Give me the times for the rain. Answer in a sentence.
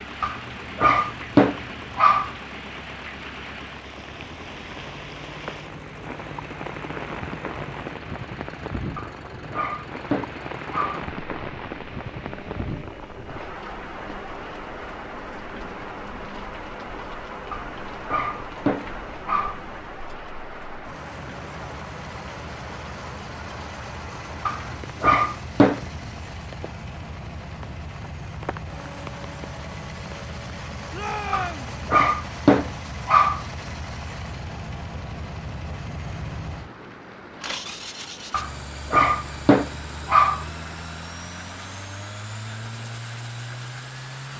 You can hear the rain from 0.0 to 44.3 s.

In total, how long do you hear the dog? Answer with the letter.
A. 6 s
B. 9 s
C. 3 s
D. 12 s
D.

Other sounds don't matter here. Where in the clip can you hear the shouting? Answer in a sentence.
You can hear the shouting from 30.9 to 31.7 s.